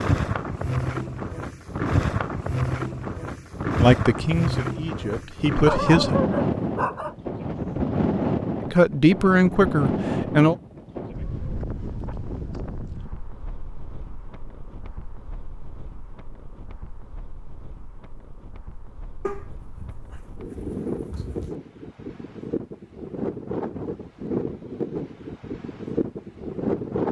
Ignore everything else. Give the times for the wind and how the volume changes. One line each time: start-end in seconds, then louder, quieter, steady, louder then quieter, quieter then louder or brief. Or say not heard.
0.0-27.0 quieter then louder.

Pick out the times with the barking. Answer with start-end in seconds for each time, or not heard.
5.7-7.2, 19.2-21.6.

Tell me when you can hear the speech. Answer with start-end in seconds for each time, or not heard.
3.8-6.2, 8.7-10.6.